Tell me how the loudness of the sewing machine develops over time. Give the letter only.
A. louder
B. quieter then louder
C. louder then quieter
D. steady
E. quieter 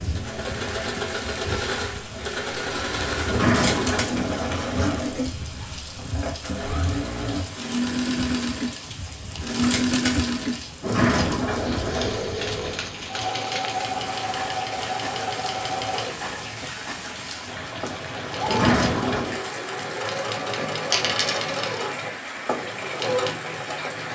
D.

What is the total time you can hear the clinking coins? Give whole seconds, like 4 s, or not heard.
2 s.